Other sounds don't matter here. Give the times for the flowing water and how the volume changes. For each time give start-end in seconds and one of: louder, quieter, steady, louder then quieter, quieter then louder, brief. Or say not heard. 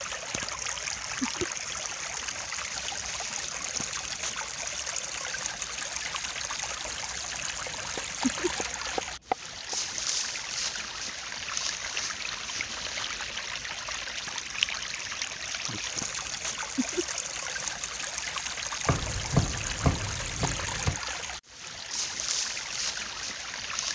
0.0-23.9 steady.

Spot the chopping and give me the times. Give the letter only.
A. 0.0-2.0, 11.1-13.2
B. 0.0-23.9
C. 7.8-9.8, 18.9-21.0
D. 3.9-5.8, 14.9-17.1
C.